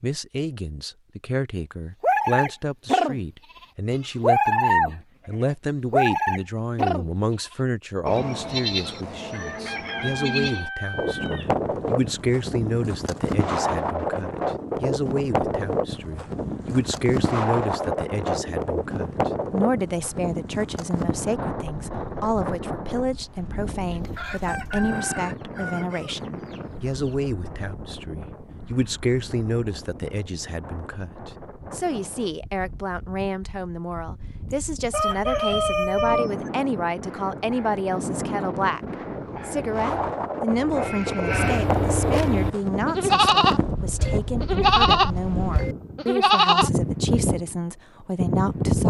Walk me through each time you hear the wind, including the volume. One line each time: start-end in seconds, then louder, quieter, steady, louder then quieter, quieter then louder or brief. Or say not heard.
10.9-48.8 quieter then louder.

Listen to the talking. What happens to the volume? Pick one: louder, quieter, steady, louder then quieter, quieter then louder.
steady.